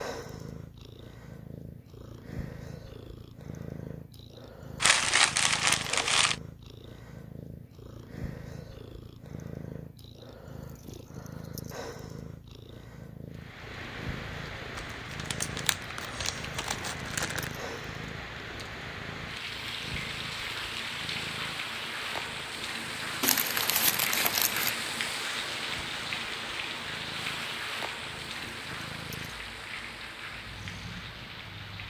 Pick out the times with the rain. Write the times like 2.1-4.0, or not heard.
13.3-31.8.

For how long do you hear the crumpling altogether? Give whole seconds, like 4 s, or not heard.
6 s.